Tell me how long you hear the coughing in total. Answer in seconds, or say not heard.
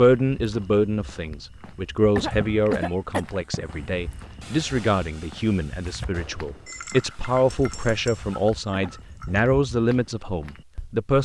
2 s.